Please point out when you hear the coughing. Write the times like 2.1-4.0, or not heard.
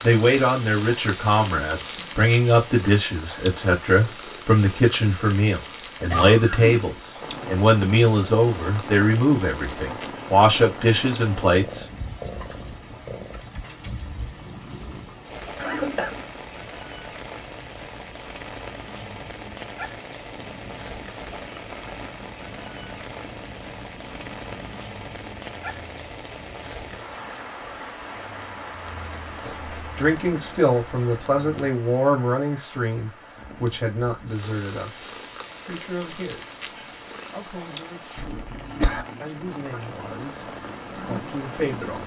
6.1-6.9, 15.6-16.1, 38.1-39.0.